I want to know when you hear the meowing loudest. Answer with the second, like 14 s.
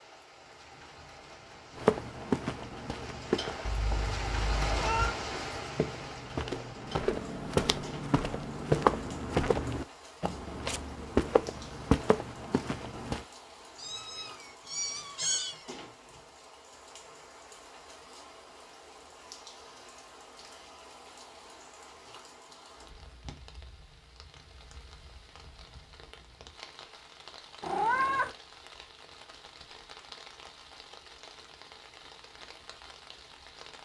28 s.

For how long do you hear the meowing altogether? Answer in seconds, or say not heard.
4 s.